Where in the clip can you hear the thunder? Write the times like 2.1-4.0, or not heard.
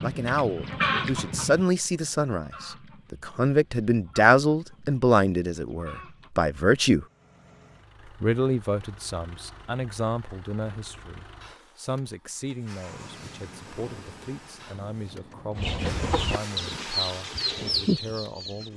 12.9-16.2.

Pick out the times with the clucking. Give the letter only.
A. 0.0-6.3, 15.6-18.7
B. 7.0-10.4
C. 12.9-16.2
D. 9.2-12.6
A.